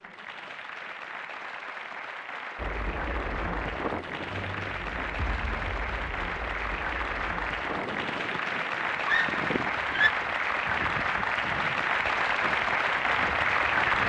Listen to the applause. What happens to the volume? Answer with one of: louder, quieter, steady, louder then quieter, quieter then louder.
louder.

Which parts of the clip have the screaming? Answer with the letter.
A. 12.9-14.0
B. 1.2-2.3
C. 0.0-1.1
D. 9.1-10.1
D.